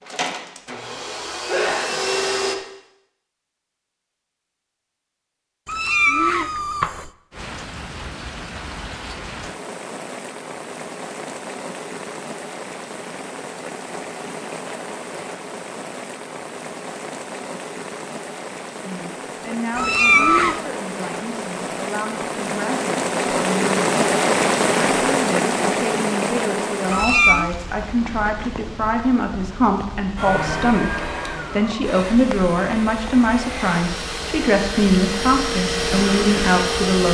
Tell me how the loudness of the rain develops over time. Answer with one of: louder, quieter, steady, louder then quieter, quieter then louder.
louder then quieter.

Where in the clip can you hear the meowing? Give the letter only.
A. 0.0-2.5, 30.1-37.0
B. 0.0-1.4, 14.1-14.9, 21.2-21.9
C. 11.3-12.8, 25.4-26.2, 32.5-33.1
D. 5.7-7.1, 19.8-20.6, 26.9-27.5
D.